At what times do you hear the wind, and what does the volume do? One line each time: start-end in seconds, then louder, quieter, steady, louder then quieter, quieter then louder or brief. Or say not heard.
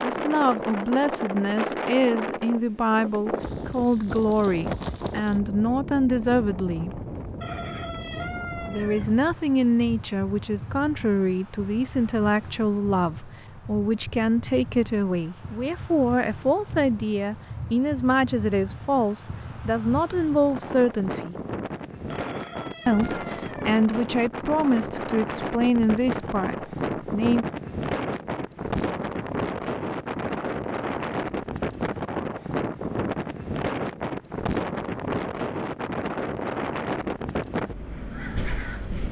0.0-39.0 quieter then louder.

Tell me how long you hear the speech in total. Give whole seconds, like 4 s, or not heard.
24 s.